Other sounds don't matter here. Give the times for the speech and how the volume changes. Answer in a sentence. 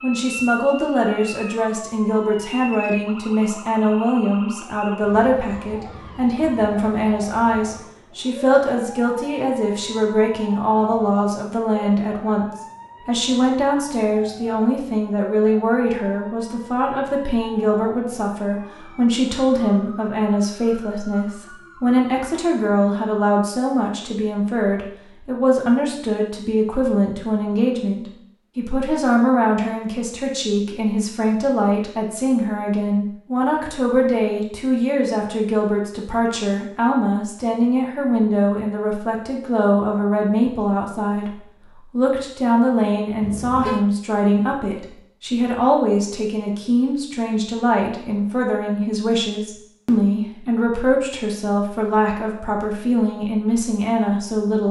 The speech can be heard from 0.0 to 54.6 s, at a steady volume.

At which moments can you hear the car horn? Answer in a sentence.
The car horn can be heard from 43.2 to 43.9 s.